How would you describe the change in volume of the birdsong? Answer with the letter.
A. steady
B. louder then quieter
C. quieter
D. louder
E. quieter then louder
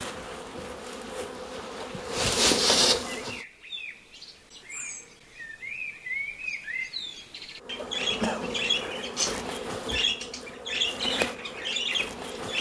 D.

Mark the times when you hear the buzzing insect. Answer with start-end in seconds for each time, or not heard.
0.0-3.4, 7.6-12.5.